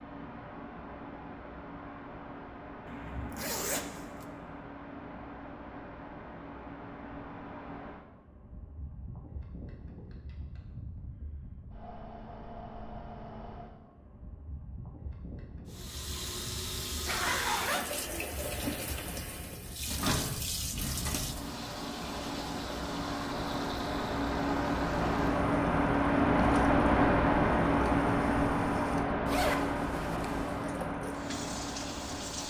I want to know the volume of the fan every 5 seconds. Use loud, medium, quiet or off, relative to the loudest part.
quiet, quiet, quiet, quiet, medium, loud, medium.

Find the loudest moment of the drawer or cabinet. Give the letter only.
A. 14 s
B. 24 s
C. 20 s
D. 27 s
C.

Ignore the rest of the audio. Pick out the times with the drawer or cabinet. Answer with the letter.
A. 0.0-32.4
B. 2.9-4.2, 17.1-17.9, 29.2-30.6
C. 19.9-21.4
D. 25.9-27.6
C.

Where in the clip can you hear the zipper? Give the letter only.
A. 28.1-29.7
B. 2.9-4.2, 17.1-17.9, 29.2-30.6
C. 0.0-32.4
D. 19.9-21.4
B.